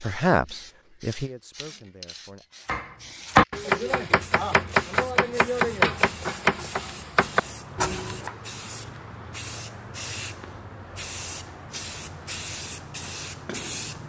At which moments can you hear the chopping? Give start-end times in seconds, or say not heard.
2.6-8.3.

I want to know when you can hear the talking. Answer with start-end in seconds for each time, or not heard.
0.0-2.5.